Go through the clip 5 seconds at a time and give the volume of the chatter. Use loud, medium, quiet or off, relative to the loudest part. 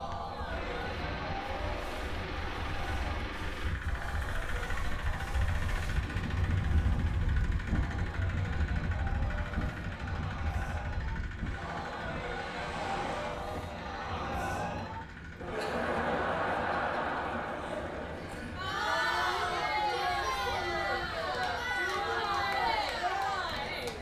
medium, quiet, medium, loud, loud.